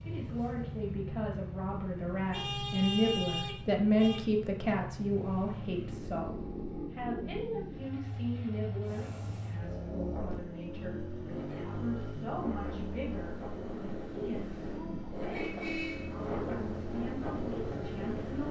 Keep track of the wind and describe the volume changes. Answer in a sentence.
The volume of the wind goes up.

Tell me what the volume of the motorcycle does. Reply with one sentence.
The loudness of the motorcycle stays about the same.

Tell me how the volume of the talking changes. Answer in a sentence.
The loudness of the talking goes down.